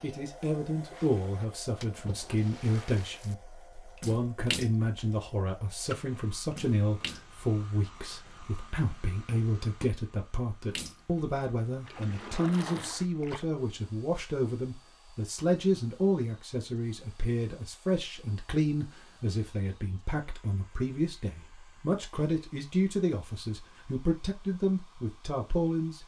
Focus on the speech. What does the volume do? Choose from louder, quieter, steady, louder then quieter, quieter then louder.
steady.